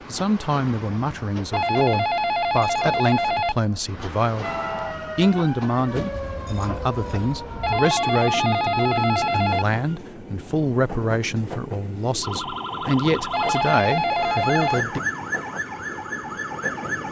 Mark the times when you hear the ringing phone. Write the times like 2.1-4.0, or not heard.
1.5-3.5, 7.6-9.7, 13.3-14.8.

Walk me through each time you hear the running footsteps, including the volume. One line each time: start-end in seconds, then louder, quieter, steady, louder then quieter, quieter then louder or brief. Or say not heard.
not heard.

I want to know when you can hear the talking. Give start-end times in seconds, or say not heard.
0.1-4.5, 5.2-15.0.